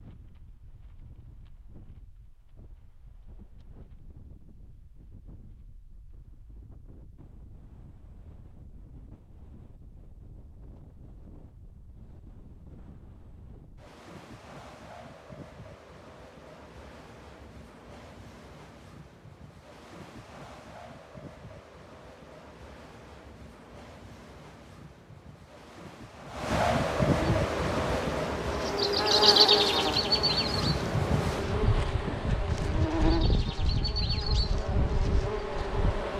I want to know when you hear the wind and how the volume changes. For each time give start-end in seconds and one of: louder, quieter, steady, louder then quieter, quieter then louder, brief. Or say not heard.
0.0-36.1 louder.